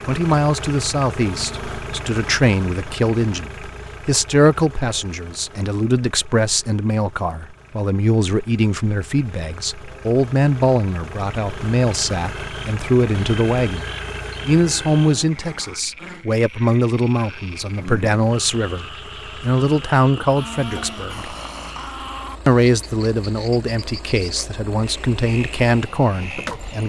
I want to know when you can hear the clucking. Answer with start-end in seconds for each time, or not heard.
not heard.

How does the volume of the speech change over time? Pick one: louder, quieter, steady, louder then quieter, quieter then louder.
steady.